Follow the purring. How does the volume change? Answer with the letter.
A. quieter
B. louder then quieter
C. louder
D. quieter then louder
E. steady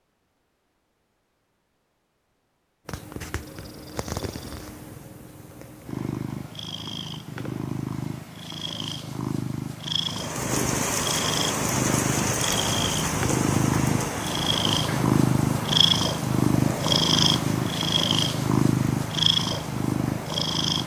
C.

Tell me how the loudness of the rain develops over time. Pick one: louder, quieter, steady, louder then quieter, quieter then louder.
quieter.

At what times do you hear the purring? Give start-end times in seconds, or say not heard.
2.9-20.8.